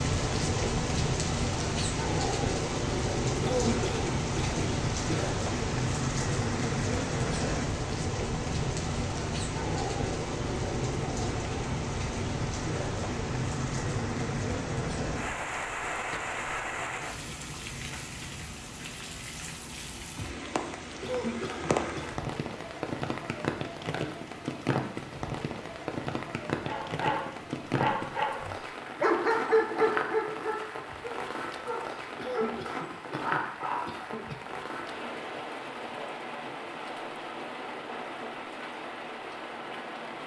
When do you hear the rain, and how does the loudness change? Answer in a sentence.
You can hear the rain from 0.0 to 40.2 s, getting quieter.